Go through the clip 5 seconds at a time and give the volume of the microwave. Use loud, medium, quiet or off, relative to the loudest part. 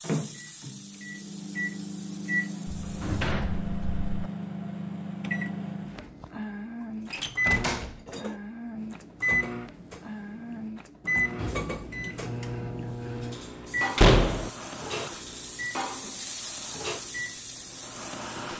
loud, loud, loud, medium.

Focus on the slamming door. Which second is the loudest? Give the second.
14 s.